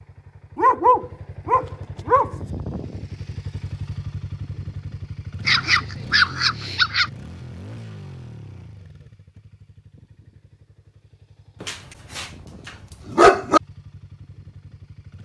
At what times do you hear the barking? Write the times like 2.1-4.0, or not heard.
0.6-2.4, 5.5-7.1, 11.6-13.6.